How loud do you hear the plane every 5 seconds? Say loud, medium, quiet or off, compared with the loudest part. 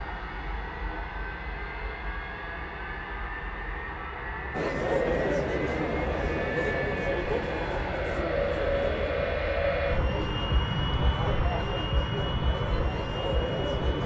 medium, loud, loud.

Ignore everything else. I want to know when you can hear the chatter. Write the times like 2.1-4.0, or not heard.
4.5-14.0.